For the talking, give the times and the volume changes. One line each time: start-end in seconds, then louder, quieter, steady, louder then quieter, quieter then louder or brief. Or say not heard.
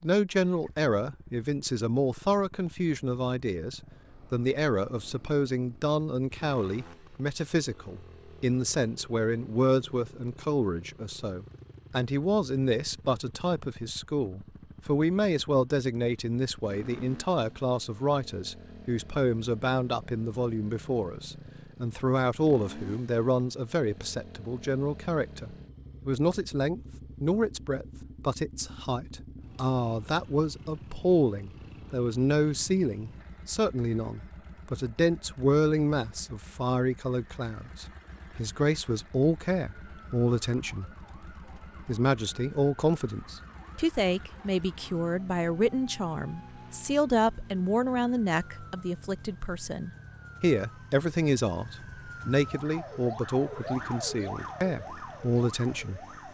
0.0-40.9 steady
41.9-56.0 steady.